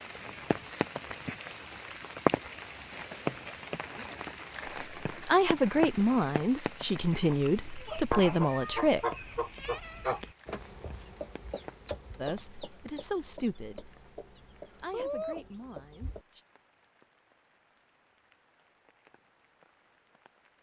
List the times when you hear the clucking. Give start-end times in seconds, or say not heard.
7.2-16.2.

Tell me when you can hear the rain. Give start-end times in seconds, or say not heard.
0.0-20.5.